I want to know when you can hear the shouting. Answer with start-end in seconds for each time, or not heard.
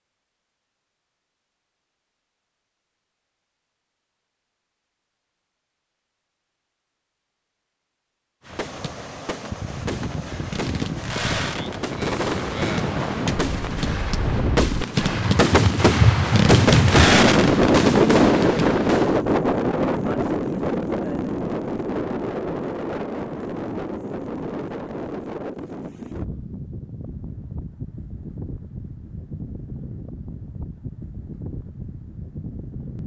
not heard.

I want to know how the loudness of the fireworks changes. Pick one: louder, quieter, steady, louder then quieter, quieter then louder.
louder.